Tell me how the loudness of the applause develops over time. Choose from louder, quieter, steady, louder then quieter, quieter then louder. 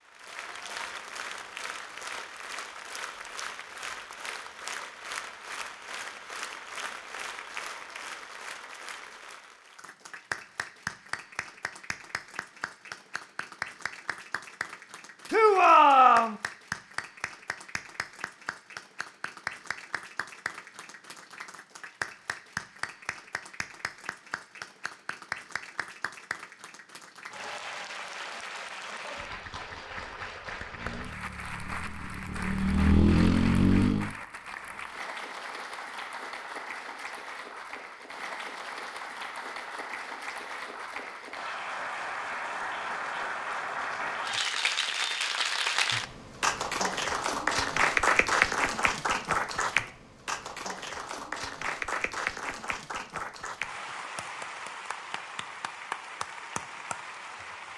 louder.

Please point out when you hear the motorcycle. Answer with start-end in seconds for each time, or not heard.
30.6-34.1.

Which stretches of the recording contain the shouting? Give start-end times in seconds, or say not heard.
15.3-16.4.